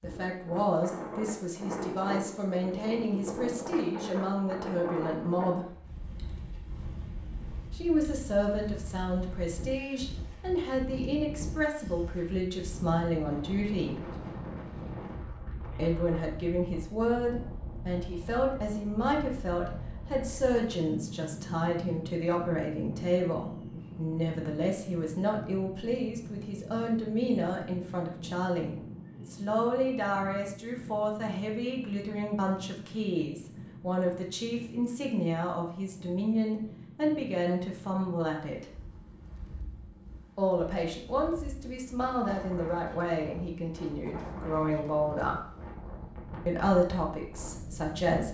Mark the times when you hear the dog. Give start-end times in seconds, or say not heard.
not heard.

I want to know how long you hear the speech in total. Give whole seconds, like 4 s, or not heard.
42 s.